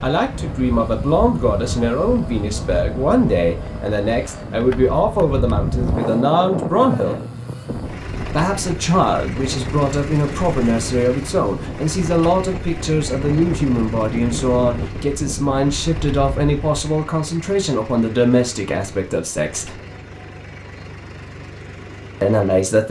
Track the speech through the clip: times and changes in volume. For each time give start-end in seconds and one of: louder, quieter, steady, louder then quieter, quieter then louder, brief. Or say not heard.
0.0-7.2 steady
8.2-19.8 steady
22.2-22.8 brief.